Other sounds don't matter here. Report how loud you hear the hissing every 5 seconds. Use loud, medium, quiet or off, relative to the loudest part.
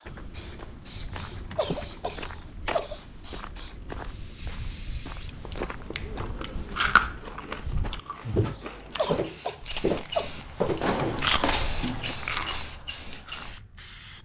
medium, medium, loud.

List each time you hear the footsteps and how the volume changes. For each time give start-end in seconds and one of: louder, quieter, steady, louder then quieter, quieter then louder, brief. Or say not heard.
0.1-11.0 louder.